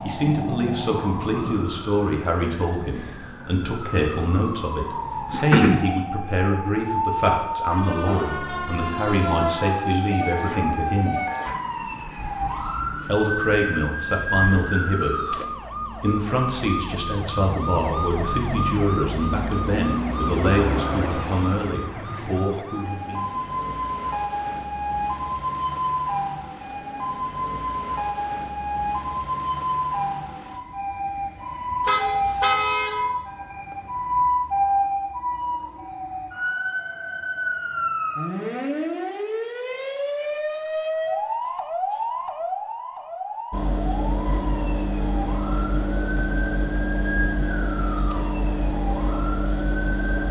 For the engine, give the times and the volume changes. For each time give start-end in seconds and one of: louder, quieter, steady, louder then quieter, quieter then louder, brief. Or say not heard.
0.0-1.6 brief
43.5-50.2 steady.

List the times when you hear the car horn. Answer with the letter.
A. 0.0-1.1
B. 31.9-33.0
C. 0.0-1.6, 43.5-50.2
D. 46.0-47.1
B.